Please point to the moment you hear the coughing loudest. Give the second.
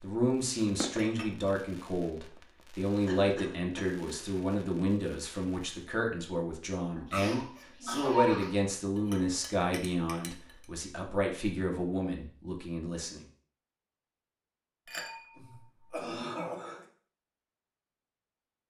8 s.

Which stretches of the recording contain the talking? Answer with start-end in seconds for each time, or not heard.
0.0-13.2.